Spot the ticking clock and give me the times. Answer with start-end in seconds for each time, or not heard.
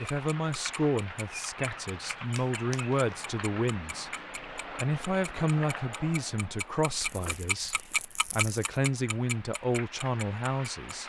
0.1-11.0.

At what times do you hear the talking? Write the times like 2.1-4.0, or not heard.
0.0-11.0.